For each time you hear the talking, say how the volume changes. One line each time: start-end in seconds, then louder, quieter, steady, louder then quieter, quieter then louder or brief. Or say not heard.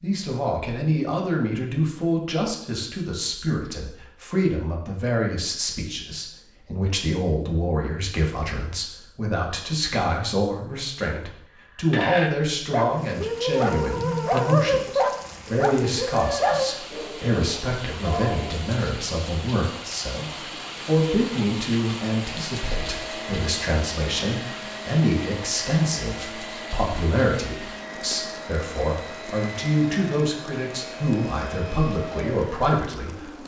0.0-33.4 steady.